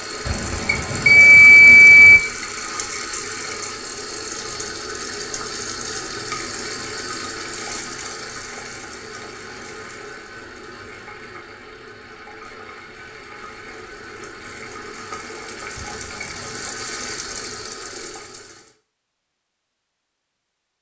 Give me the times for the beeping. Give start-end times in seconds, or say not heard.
0.2-2.2, 15.8-16.6.